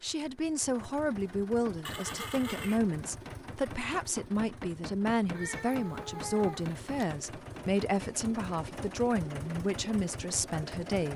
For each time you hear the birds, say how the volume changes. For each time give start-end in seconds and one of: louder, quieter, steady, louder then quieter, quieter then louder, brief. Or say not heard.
not heard.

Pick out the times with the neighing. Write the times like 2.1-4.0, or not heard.
1.8-2.8.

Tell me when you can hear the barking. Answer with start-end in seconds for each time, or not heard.
not heard.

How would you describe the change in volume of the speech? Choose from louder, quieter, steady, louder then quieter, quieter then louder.
steady.